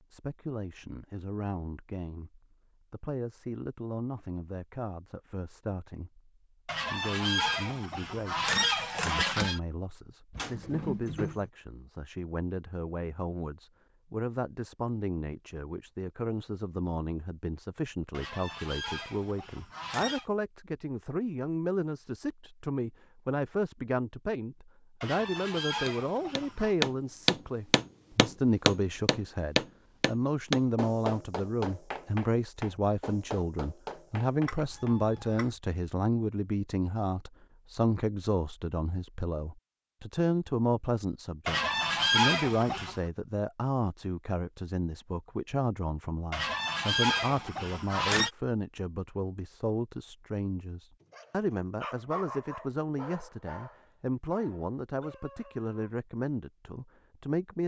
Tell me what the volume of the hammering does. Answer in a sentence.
The volume of the hammering goes down.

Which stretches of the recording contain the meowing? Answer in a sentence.
The meowing can be heard from 10.3 to 11.5 s and from 34.5 to 35.5 s.